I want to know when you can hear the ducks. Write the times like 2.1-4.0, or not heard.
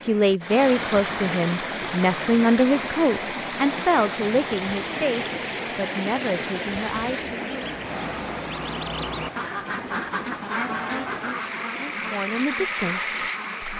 7.5-13.7.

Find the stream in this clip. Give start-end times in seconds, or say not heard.
0.0-13.7.